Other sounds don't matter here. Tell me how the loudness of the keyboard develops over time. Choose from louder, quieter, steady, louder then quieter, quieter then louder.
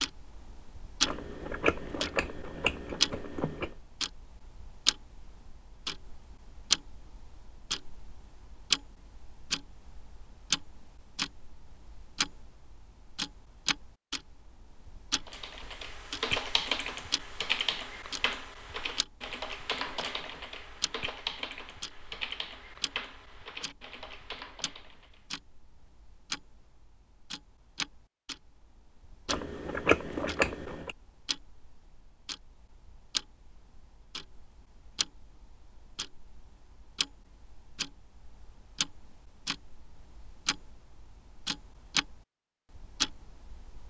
quieter.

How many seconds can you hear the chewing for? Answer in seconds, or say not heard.
4 s.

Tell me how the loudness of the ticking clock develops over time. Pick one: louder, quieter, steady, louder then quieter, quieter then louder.
quieter then louder.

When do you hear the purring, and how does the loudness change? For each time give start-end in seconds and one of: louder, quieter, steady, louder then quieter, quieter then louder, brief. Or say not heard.
not heard.